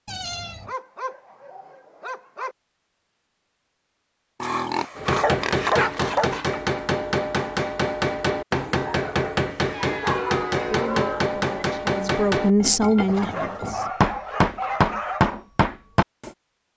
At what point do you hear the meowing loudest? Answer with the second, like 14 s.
10 s.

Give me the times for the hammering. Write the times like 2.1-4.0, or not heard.
5.0-16.3.